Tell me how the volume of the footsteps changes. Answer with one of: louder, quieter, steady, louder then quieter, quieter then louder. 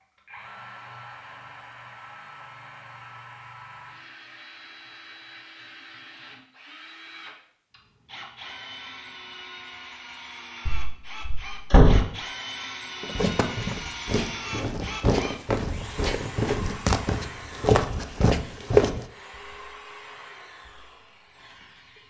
louder.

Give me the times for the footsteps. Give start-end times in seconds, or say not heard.
13.0-19.1.